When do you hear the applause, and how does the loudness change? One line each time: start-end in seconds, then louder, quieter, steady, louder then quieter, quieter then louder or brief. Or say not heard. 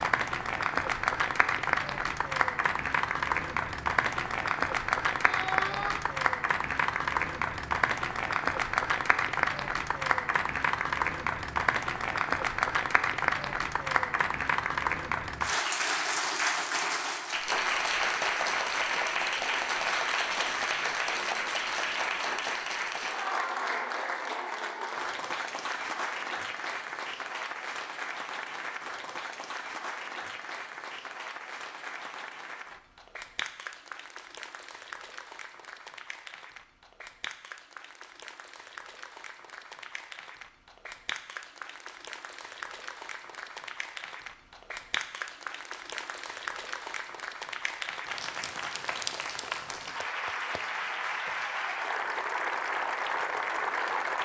0.0-54.1 quieter then louder.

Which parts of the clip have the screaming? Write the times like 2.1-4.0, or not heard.
5.2-6.0.